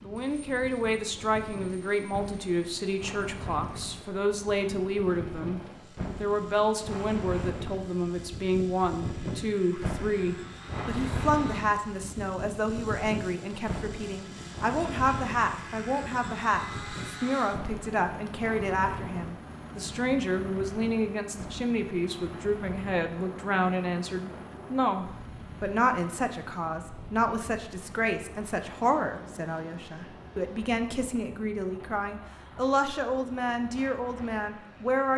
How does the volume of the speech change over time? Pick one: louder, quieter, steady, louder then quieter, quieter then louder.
steady.